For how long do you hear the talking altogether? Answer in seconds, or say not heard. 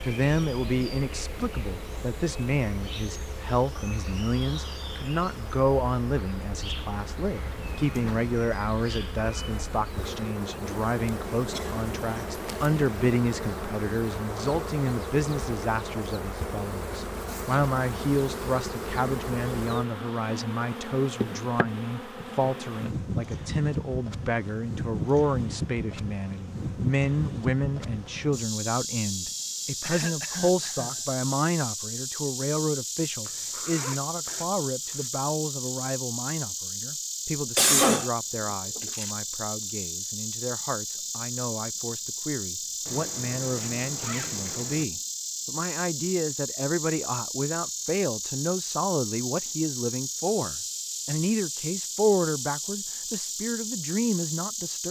55 s.